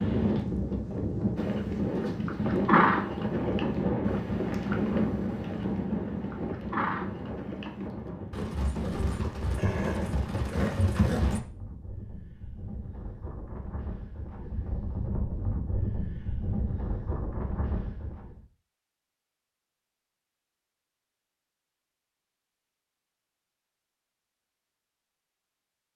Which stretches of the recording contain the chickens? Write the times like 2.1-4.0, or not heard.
not heard.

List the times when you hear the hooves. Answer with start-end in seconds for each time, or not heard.
1.4-11.4.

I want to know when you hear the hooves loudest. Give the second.
3 s.